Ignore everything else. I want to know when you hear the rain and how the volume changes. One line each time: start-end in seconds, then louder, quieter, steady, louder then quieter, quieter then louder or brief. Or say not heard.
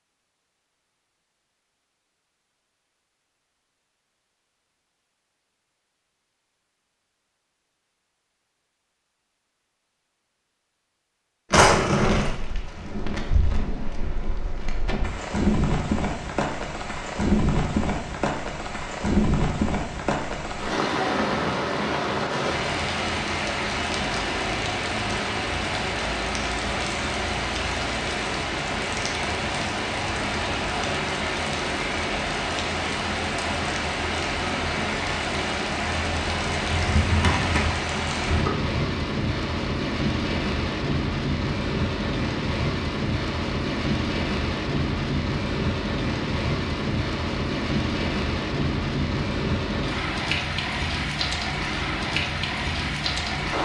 11.9-53.6 steady.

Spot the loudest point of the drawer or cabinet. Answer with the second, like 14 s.
12 s.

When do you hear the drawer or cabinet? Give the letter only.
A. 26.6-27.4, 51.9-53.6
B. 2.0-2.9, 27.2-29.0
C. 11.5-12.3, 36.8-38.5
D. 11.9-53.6
C.